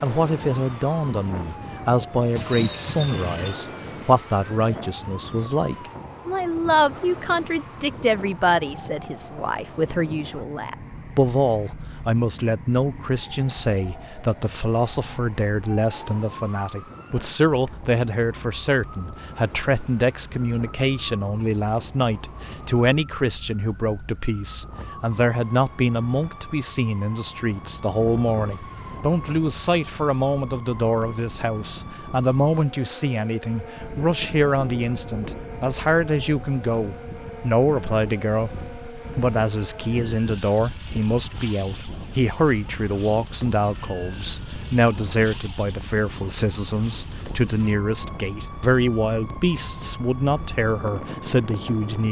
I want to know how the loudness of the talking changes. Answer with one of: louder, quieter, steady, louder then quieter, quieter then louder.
steady.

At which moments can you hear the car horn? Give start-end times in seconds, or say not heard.
2.4-3.6.